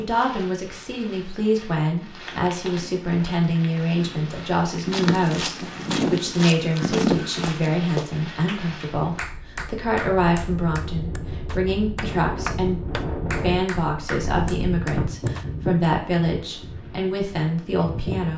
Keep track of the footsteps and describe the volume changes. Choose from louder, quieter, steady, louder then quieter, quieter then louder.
louder.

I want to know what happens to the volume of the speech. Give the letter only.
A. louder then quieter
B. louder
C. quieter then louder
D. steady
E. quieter
D.